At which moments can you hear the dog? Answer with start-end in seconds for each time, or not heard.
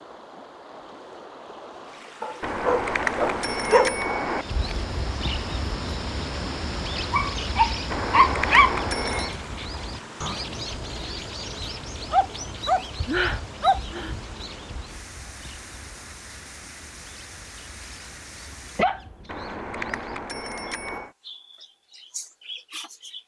2.2-4.0, 7.1-8.8, 12.1-14.2, 18.8-20.0.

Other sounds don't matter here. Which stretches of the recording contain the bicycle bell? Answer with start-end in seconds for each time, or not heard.
2.4-4.5, 7.9-9.3, 19.2-21.1.